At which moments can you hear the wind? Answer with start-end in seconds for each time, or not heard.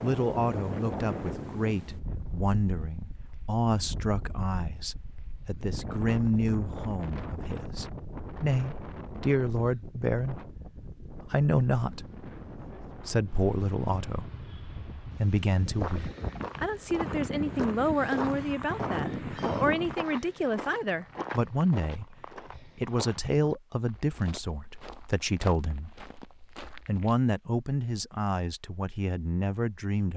0.0-19.9.